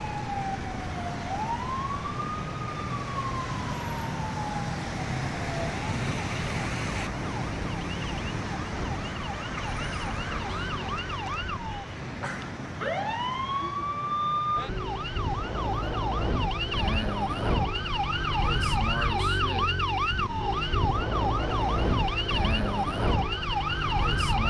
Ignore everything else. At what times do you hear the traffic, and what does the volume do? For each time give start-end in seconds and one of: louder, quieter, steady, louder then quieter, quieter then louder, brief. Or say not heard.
0.0-24.4 quieter.